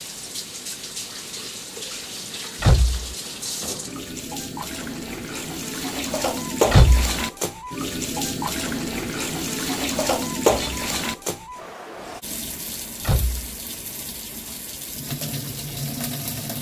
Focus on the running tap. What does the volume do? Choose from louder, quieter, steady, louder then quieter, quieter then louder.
louder then quieter.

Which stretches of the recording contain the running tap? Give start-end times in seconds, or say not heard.
0.0-16.5.